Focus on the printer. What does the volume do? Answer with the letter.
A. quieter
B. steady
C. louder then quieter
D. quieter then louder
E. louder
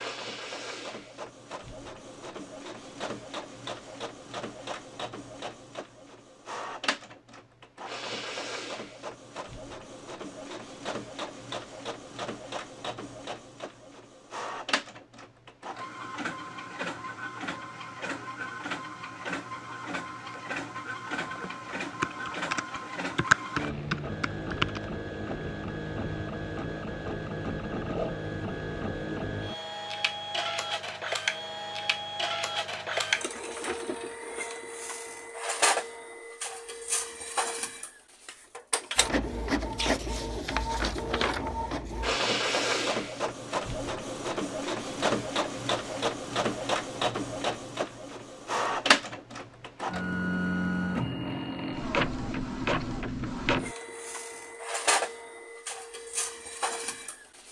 E.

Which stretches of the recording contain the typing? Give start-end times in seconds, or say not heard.
21.4-24.9.